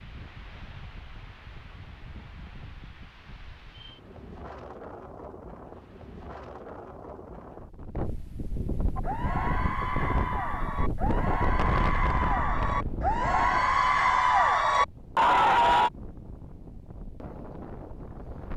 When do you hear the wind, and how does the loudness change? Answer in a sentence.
You can hear the wind from 0.0 to 18.5 s, getting louder then quieter.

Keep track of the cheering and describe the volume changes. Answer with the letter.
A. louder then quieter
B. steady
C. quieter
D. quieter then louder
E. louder
E.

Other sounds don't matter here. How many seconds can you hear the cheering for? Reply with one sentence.
You can hear the cheering for 7 seconds altogether.